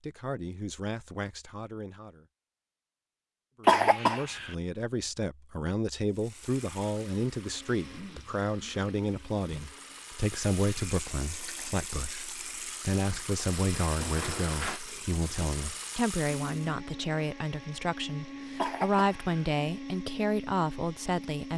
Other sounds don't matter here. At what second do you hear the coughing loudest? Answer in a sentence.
The volume of the coughing peaks at 4 seconds.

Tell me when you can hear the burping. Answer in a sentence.
You can't hear the burping here.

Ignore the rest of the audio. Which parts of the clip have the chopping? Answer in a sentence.
You can't hear the chopping here.